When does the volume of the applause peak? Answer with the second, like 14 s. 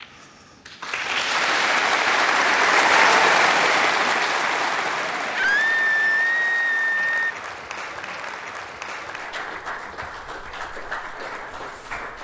3 s.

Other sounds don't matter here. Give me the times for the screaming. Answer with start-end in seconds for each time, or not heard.
5.3-7.3.